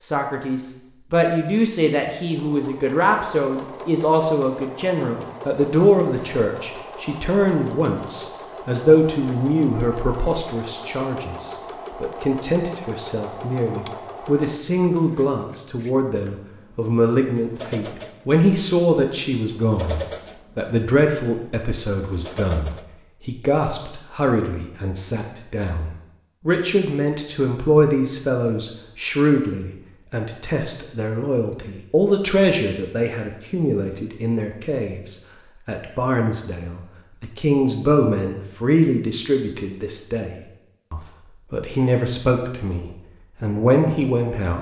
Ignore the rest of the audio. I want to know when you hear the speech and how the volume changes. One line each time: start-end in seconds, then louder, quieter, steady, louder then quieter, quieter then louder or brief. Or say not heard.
0.0-44.5 steady.